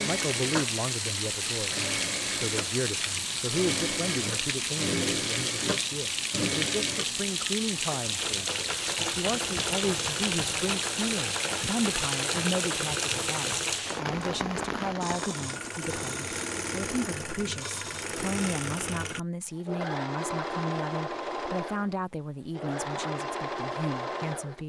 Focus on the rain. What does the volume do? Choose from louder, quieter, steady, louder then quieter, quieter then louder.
steady.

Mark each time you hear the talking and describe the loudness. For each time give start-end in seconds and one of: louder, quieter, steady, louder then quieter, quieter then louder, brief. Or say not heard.
0.0-24.6 steady.